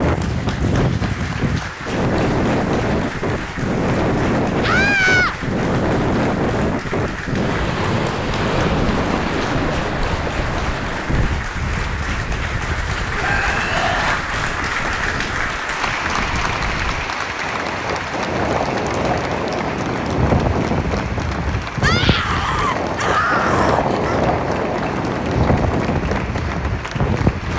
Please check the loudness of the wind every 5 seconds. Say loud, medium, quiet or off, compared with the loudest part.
loud, loud, medium, medium, loud, loud.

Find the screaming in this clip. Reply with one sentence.
You can hear the screaming from 4.6 to 5.3 s, from 13.2 to 14.2 s and from 21.8 to 24.2 s.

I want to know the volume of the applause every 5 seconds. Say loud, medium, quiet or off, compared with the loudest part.
medium, medium, loud, loud, medium, medium.